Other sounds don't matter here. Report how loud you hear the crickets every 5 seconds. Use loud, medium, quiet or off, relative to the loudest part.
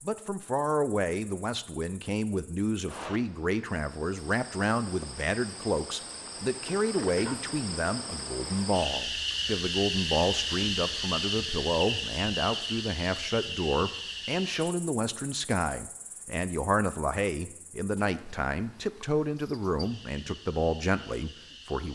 quiet, loud, loud, quiet, quiet.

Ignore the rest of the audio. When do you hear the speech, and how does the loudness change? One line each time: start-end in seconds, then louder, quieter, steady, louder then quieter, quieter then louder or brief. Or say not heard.
0.0-21.8 steady.